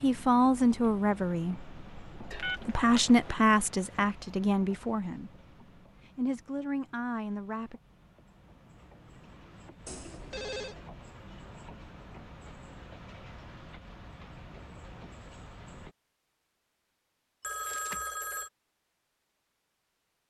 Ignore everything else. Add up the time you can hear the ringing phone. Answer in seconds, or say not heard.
3 s.